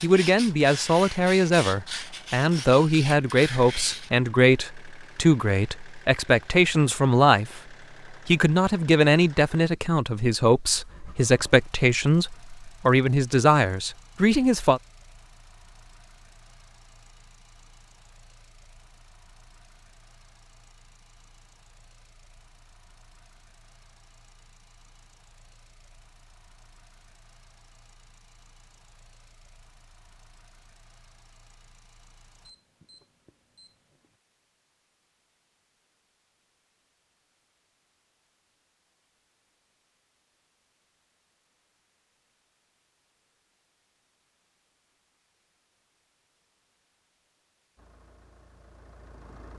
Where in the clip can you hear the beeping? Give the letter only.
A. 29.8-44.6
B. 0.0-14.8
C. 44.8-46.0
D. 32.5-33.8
D.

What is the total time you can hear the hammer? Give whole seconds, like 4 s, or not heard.
not heard.